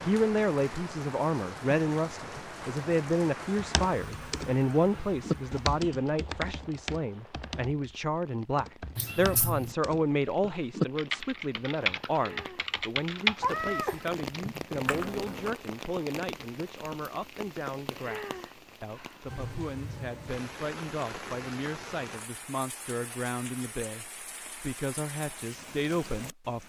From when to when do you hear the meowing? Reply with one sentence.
You can hear the meowing from 8.9 to 9.8 s and from 13.4 to 14.7 s.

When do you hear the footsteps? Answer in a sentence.
You can't hear the footsteps here.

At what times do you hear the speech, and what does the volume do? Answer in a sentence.
You can hear the speech from 0.0 to 26.6 s, getting quieter.